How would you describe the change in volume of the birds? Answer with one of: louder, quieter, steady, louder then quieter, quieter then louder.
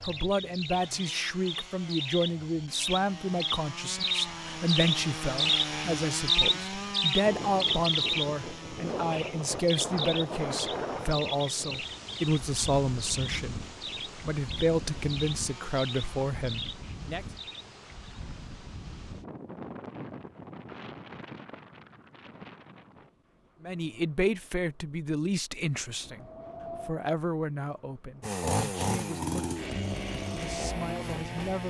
louder then quieter.